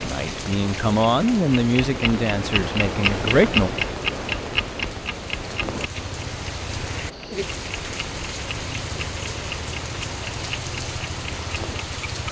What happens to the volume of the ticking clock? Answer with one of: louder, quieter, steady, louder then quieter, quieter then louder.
louder then quieter.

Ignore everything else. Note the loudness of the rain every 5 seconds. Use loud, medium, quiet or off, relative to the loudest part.
medium, loud, loud.